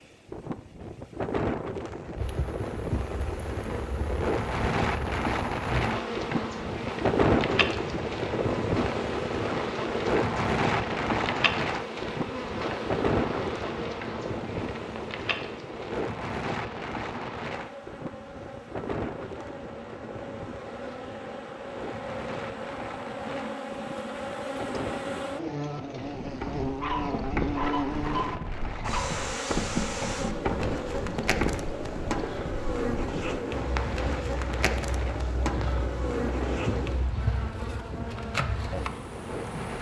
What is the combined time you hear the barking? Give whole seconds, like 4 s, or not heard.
2 s.